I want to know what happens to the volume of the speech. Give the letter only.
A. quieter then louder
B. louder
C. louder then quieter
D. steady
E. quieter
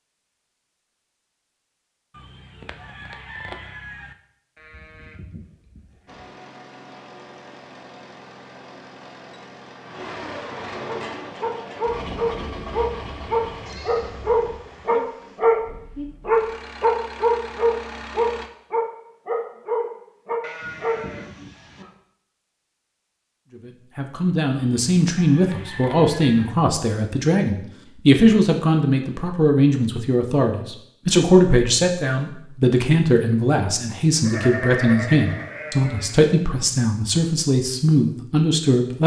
D.